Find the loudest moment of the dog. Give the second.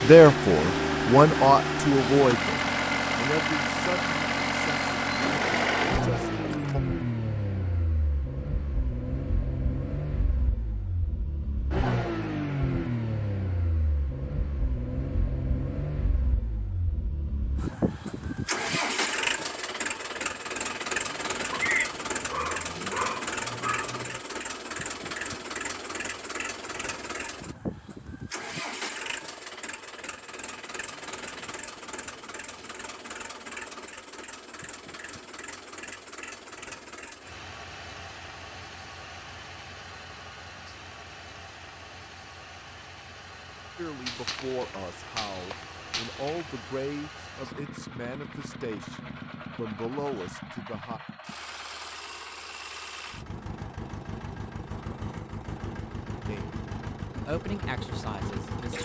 22 s.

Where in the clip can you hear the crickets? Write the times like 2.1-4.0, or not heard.
not heard.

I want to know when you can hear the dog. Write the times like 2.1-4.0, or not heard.
21.5-24.2.